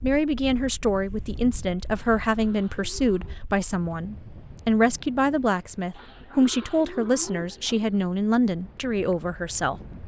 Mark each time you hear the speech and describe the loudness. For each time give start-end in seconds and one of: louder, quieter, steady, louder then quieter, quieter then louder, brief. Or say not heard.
0.0-9.8 steady.